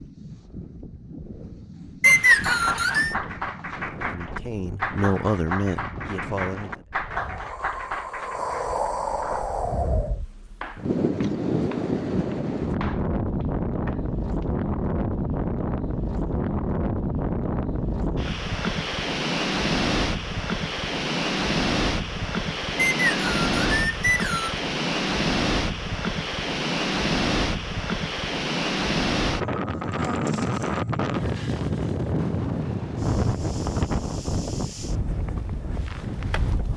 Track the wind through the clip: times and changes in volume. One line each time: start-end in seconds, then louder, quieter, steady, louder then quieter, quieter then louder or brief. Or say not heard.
0.0-36.7 louder.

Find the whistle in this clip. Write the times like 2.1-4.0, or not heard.
2.0-3.1, 22.8-24.6.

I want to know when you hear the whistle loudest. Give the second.
2 s.